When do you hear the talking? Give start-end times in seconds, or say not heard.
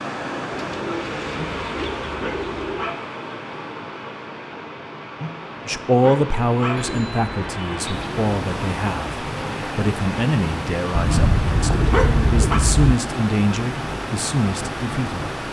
5.7-15.3.